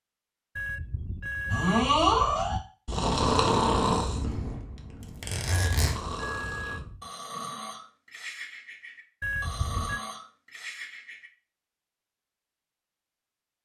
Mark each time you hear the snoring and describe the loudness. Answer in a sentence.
The snoring can be heard from 1.5 to 11.3 s, getting quieter.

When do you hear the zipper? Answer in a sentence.
The zipper can be heard from 5.0 to 6.0 s.